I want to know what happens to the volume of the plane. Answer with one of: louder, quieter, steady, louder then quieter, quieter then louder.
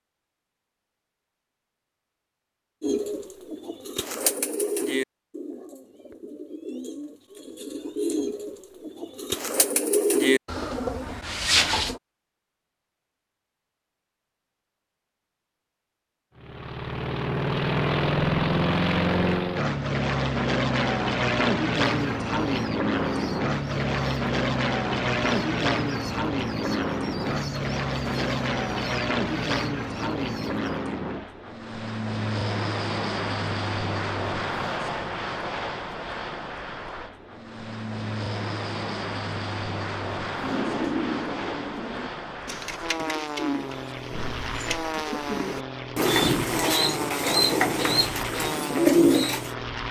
quieter.